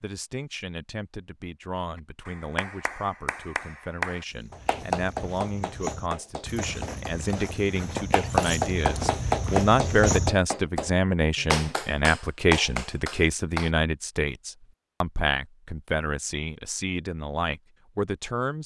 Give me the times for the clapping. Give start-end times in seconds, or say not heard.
2.2-13.7.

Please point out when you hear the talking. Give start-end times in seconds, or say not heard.
0.0-18.6.